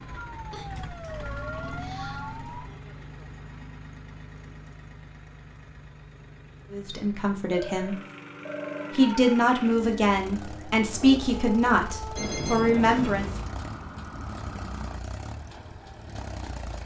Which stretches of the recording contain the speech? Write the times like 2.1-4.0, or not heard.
6.7-8.0, 8.9-13.3.